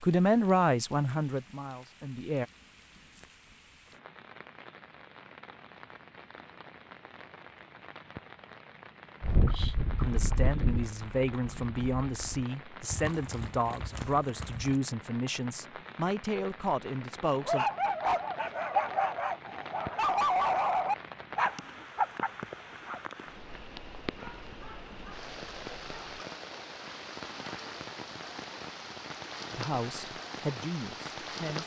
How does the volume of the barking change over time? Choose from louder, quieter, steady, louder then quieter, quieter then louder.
quieter.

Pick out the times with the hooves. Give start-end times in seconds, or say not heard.
9.2-14.8.